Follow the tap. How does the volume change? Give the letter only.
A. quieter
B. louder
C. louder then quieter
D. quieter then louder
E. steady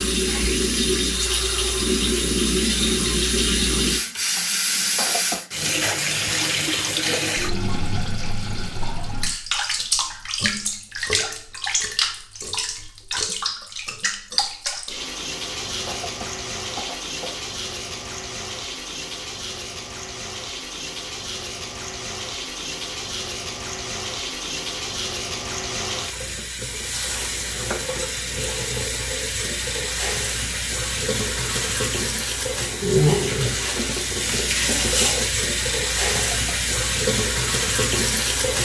D.